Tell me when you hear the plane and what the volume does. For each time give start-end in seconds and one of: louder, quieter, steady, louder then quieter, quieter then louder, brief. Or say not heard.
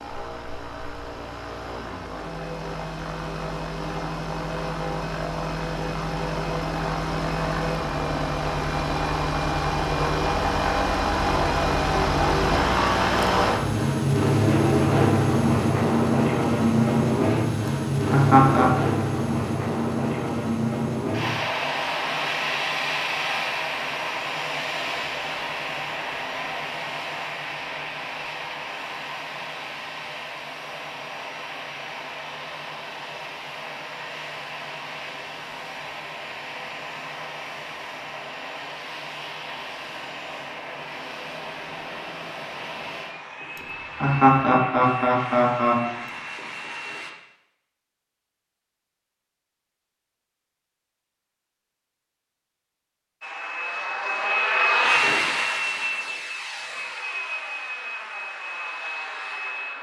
0.0-47.1 louder then quieter
53.2-59.7 quieter.